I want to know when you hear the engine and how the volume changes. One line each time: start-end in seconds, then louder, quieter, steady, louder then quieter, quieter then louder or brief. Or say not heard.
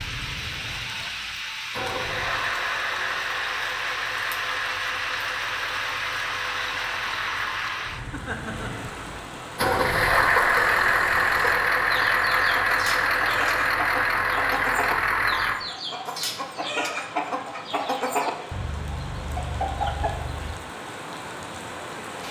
0.0-15.6 louder.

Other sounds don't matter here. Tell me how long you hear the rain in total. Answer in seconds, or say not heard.
22 s.